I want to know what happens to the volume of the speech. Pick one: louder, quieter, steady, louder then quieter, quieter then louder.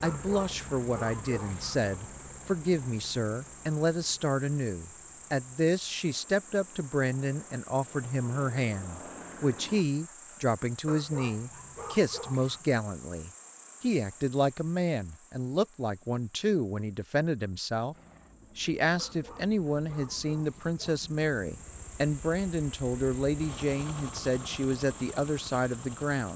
steady.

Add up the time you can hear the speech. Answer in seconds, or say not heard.
26 s.